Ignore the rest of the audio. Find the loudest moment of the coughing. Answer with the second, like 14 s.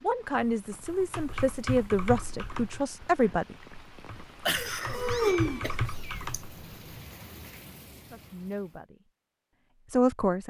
5 s.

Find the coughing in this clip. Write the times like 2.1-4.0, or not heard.
4.5-6.4.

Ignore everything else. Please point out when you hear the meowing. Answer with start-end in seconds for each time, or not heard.
4.9-6.2.